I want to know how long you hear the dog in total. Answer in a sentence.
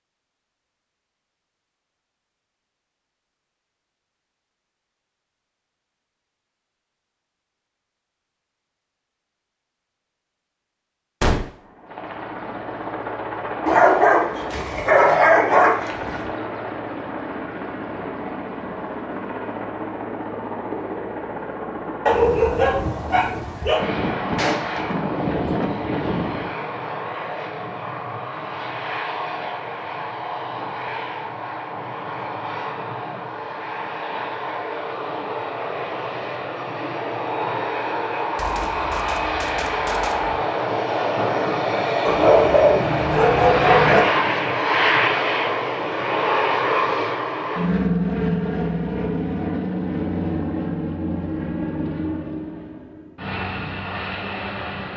The dog can be heard for 6 seconds in total.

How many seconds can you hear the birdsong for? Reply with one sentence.
You can't hear the birdsong here.